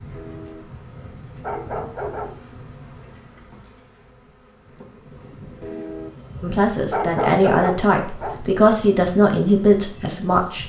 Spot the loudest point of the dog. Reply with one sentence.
The volume of the dog peaks at 7 seconds.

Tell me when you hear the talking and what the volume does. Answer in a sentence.
You can hear the talking from 6.4 to 10.6 s, at a steady volume.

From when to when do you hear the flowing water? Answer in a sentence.
You can't hear the flowing water here.